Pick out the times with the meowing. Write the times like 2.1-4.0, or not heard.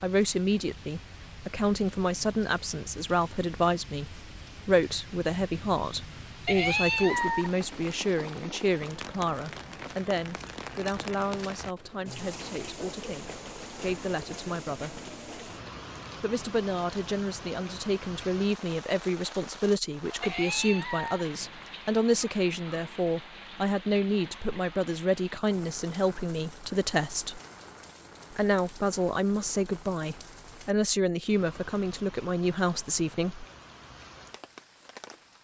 6.5-8.0, 20.2-21.8.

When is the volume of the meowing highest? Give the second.
7 s.